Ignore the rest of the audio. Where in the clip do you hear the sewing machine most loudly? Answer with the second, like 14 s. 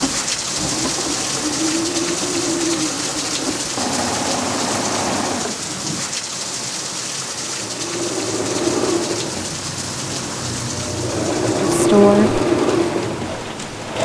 12 s.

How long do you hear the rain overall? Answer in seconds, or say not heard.
14 s.